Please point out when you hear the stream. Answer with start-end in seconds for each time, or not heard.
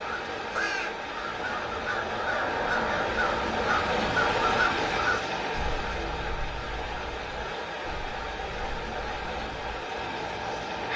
0.0-10.9.